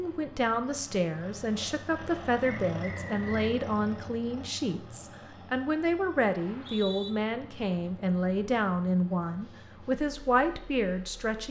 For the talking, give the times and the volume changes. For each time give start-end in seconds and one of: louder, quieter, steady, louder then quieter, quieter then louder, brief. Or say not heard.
0.0-11.4 steady.